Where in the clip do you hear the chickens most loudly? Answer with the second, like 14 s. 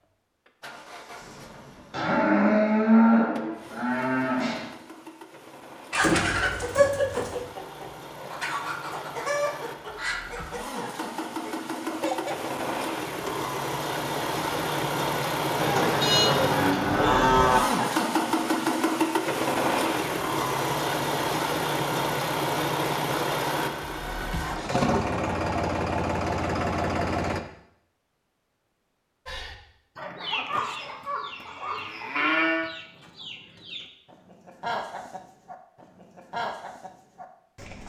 7 s.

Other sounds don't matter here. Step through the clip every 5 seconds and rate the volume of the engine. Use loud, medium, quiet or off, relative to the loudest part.
quiet, quiet, medium, loud, loud, loud, off, off.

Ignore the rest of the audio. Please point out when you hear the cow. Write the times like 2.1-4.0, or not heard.
1.9-4.7, 15.6-17.6, 30.2-32.6.